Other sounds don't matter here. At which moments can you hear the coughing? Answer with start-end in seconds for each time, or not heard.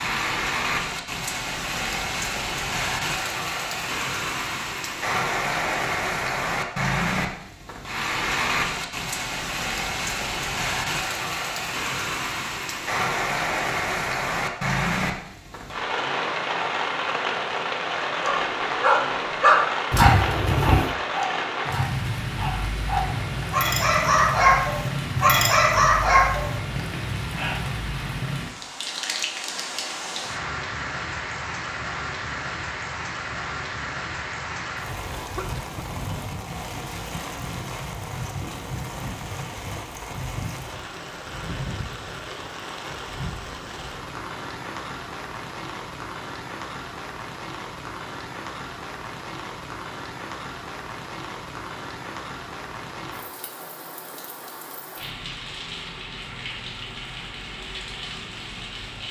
35.1-35.8.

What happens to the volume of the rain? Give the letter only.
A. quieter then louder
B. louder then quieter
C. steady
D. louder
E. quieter
E.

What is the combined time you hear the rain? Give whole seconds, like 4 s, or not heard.
59 s.